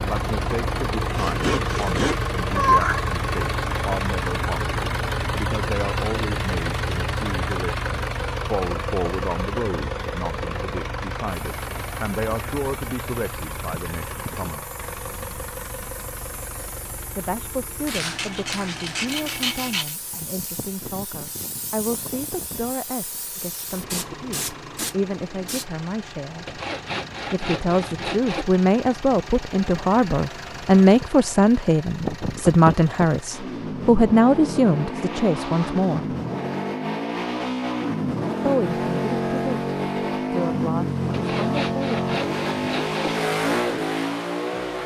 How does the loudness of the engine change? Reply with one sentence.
The volume of the engine goes down, then up.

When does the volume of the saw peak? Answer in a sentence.
The loudest moment of the saw is at 3 seconds.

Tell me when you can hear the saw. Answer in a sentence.
The saw can be heard from 1.1 to 3.0 s, from 17.9 to 19.9 s, from 26.4 to 28.4 s and from 41.1 to 43.1 s.